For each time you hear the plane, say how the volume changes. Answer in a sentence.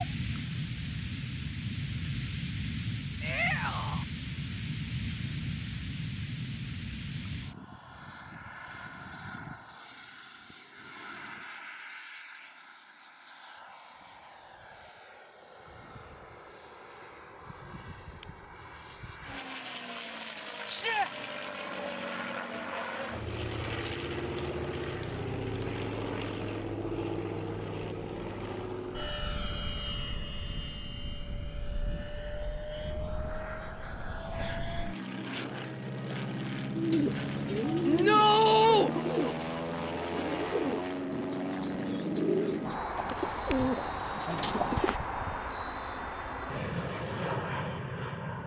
You can hear the plane from 0.0 to 48.4 s, getting quieter then louder.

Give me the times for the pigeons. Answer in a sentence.
You can hear the pigeons from 36.7 to 45.0 s.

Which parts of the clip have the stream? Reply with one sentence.
You can't hear the stream here.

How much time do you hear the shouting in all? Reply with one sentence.
You can hear the shouting for 2 seconds altogether.